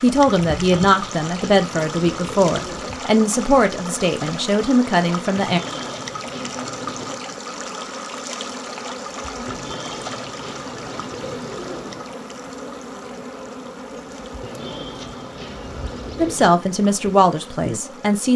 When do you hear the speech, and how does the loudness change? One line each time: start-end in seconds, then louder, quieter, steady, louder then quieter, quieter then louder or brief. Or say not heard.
0.0-5.6 steady
16.1-18.3 brief.